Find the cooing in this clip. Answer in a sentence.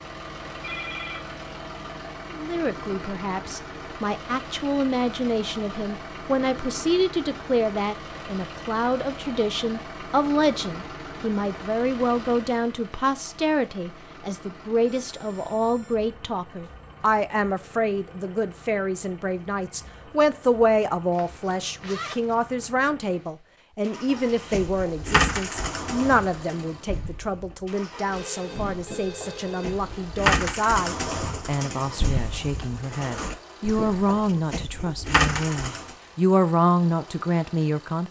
The cooing can be heard from 24.1 to 35.9 s.